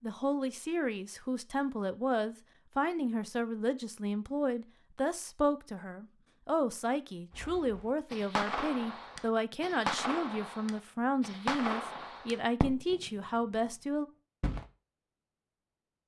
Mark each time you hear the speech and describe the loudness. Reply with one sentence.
You can hear the speech from 0.0 to 14.1 s, at a steady volume.